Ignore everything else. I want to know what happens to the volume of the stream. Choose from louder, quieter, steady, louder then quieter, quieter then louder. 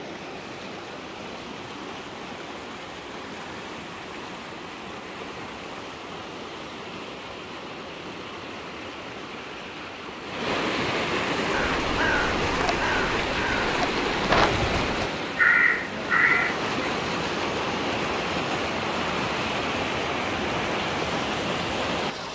louder.